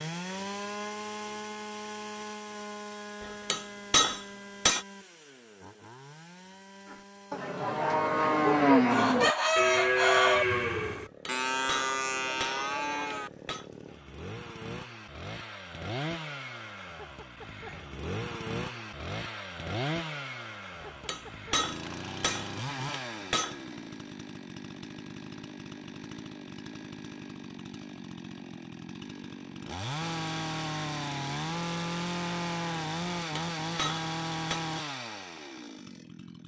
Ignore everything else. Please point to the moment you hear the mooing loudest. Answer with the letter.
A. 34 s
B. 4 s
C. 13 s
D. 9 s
D.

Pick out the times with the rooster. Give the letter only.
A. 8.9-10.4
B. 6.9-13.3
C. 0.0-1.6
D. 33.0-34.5
A.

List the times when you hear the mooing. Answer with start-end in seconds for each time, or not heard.
6.9-13.3.